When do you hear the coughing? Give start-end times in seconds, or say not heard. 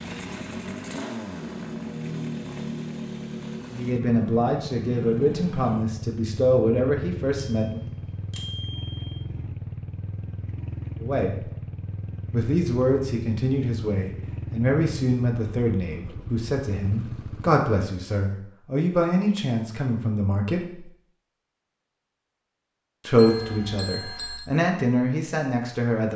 not heard.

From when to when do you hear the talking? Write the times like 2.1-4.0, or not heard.
3.7-7.8, 11.0-11.5, 12.3-20.9, 23.1-26.1.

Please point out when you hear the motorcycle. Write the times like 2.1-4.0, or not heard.
0.0-17.6.